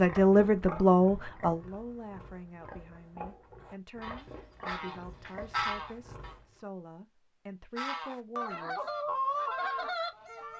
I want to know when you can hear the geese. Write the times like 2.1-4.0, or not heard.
4.0-6.3, 7.8-10.5.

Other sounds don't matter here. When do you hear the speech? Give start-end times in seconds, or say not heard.
0.0-8.9.